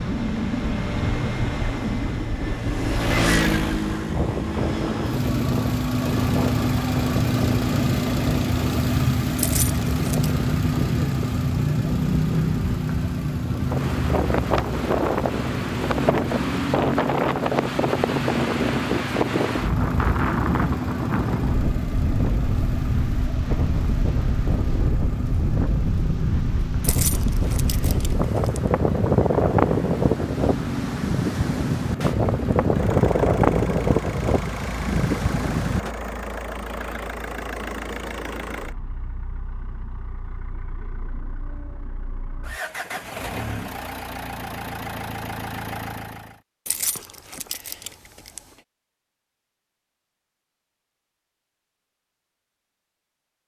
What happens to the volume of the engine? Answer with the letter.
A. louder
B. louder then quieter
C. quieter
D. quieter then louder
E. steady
C.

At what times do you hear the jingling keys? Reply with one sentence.
The jingling keys can be heard from 9.3 to 10.3 s, from 26.8 to 28.6 s and from 46.6 to 48.4 s.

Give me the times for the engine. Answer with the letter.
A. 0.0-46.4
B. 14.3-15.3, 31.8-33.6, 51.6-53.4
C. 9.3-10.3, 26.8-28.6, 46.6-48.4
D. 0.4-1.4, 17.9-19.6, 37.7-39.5
A.